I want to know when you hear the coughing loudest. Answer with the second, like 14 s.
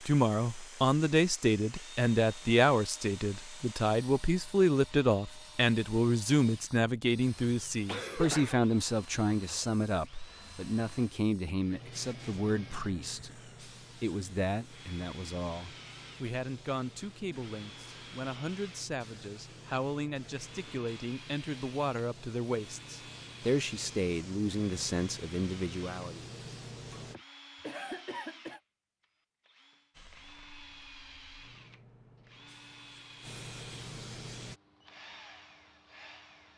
8 s.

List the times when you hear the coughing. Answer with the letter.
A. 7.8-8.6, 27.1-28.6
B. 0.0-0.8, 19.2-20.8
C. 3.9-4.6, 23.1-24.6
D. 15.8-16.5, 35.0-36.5
A.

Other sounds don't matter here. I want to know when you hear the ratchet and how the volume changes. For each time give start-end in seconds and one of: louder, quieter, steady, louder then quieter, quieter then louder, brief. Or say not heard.
not heard.